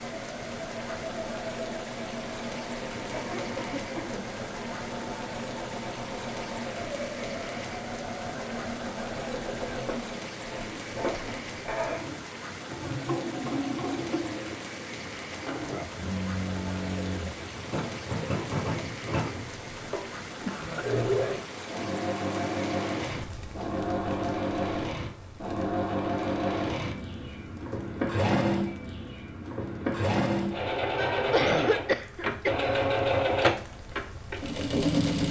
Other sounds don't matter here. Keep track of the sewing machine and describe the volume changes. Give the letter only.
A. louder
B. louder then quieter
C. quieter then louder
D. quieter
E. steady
A.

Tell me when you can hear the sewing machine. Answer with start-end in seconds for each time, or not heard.
0.0-35.2.